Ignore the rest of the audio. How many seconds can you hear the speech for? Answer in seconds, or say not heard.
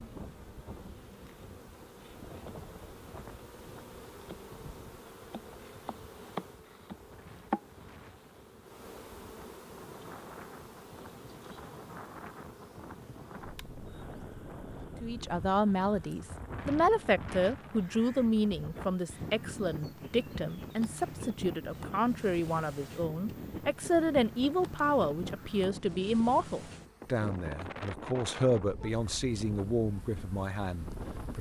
16 s.